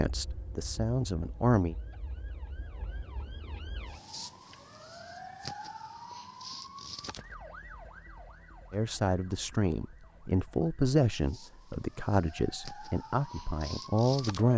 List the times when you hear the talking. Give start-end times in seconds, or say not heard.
0.0-1.8, 8.7-14.5.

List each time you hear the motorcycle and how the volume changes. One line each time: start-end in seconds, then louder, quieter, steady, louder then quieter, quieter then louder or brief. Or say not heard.
not heard.